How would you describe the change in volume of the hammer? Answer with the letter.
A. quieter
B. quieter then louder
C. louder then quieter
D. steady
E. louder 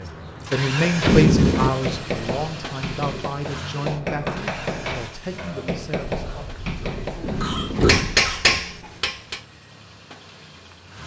E.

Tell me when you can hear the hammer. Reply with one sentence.
You can hear the hammer from 0.7 to 9.4 s.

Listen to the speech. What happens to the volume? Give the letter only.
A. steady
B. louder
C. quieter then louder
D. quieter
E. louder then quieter
D.